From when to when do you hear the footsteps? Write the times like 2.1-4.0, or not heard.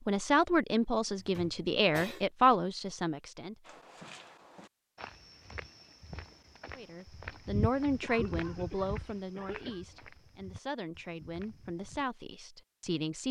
3.6-12.1.